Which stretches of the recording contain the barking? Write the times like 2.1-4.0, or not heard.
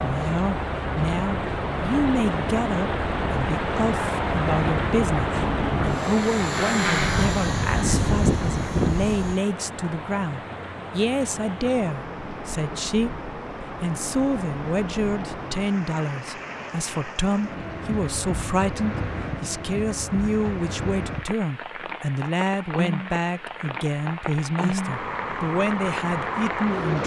not heard.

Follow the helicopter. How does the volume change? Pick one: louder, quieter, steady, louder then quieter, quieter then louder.
louder.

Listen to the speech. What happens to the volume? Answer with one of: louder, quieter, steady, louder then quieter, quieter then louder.
steady.